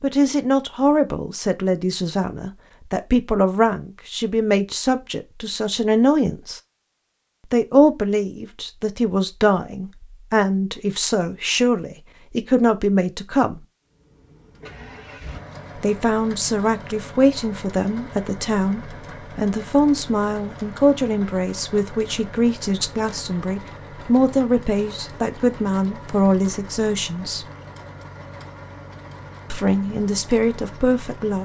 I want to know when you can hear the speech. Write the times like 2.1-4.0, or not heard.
0.0-6.6, 7.5-13.6, 15.8-27.4, 29.5-31.3.